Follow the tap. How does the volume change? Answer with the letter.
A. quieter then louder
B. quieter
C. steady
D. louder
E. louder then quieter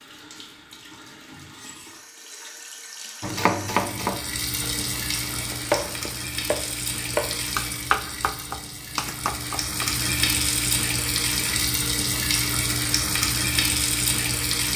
D.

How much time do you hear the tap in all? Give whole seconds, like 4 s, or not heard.
15 s.